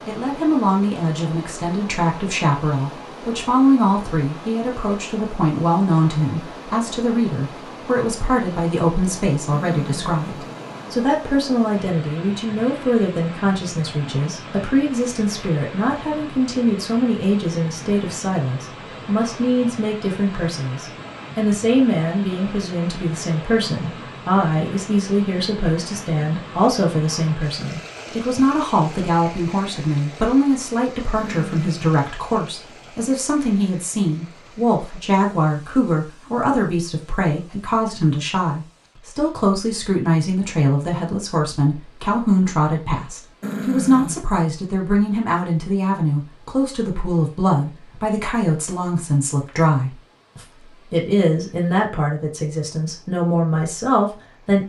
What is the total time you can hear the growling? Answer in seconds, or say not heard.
3 s.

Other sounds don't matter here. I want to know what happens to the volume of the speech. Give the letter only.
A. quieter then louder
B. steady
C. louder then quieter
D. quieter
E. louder
B.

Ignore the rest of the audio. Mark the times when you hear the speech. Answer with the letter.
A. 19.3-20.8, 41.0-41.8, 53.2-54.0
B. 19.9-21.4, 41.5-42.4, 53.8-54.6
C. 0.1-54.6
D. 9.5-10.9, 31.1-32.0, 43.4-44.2
C.